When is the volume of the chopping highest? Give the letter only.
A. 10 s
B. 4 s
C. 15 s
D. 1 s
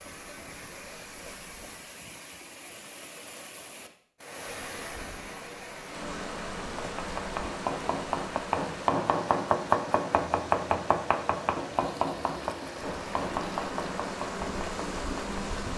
A.